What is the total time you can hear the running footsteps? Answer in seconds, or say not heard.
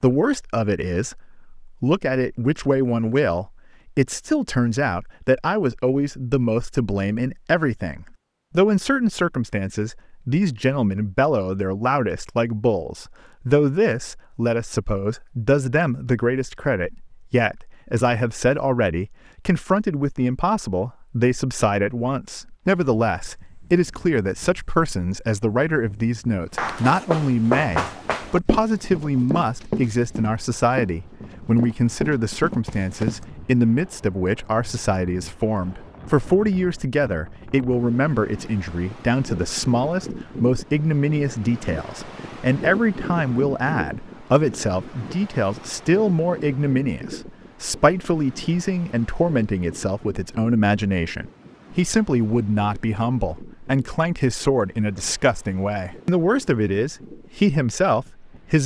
7 s.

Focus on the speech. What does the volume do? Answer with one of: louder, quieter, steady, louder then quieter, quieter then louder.
steady.